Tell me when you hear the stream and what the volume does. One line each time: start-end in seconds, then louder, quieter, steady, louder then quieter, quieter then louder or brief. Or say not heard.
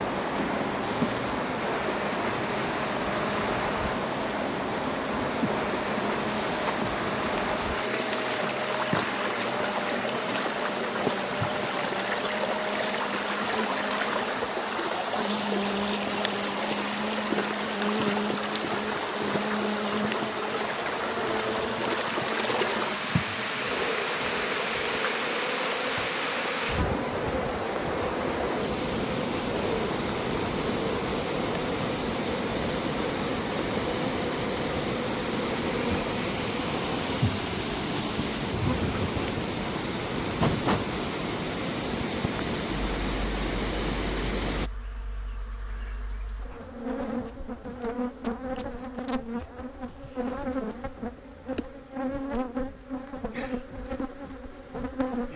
0.0-44.7 steady.